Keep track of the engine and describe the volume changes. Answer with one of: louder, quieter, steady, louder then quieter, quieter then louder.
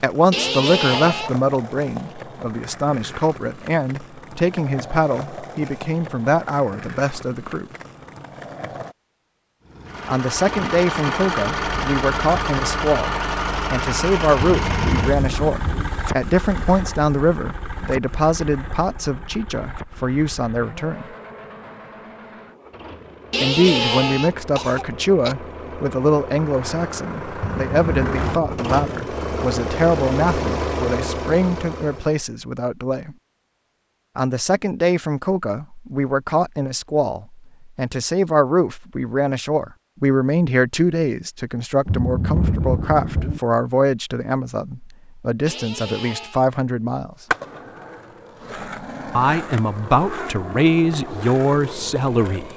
quieter then louder.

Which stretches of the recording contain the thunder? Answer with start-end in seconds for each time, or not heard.
14.3-15.9, 27.4-28.8, 41.9-43.4.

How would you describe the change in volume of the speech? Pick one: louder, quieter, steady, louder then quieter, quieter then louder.
steady.